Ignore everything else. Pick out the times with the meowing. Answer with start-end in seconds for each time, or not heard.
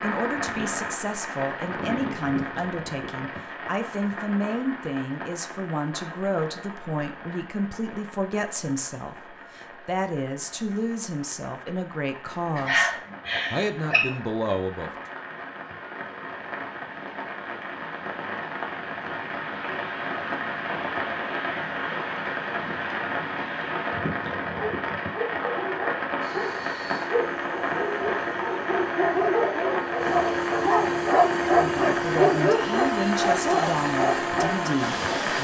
not heard.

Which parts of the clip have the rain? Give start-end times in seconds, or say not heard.
0.0-35.3.